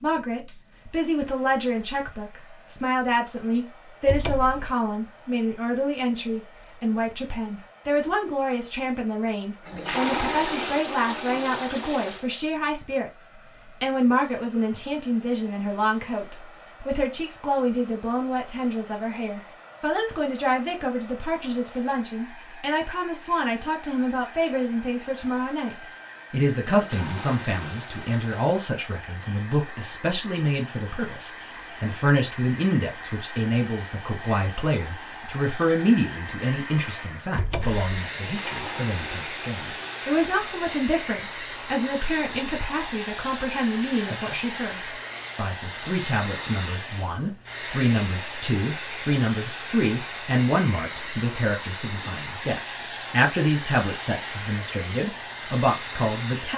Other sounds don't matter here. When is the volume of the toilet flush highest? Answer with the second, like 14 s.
10 s.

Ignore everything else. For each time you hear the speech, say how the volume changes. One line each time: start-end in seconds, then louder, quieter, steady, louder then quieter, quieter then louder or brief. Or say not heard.
0.0-56.5 steady.